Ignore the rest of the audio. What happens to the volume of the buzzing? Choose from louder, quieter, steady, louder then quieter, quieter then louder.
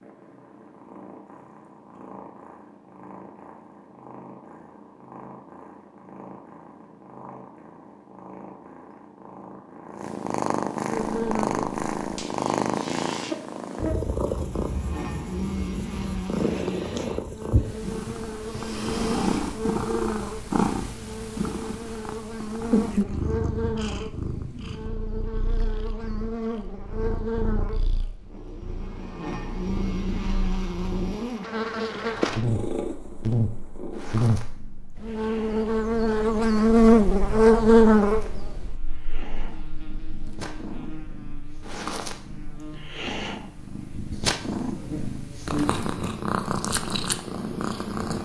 louder then quieter.